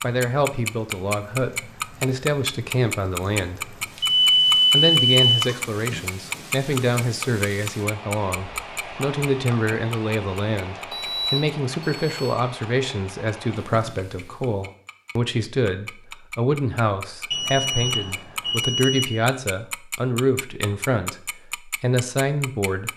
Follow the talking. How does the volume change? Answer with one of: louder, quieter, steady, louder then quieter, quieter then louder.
steady.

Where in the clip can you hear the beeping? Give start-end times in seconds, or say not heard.
4.0-6.0, 10.9-12.3, 17.3-19.1.